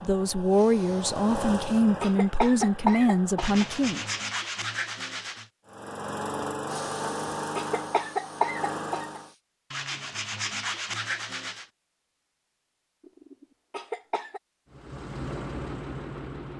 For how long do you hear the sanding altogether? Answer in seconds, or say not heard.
4 s.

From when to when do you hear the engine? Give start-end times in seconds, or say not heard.
0.0-4.4, 5.7-9.3, 14.7-16.5.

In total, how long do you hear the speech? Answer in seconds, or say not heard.
4 s.